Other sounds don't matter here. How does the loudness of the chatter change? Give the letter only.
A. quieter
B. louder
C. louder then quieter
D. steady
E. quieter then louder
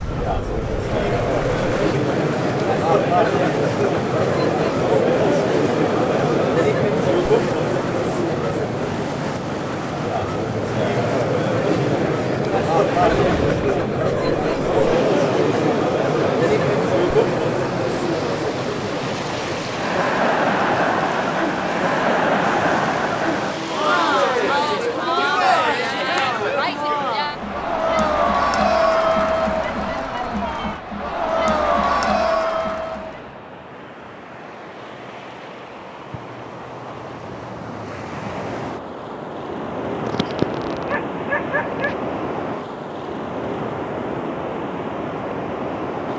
D.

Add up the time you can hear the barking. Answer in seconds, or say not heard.
2 s.